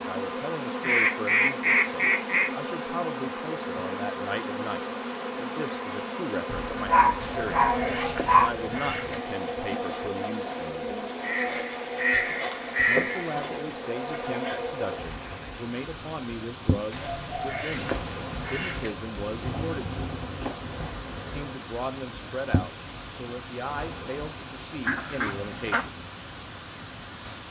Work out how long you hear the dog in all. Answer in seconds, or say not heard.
2 s.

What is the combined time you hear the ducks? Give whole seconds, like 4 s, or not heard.
9 s.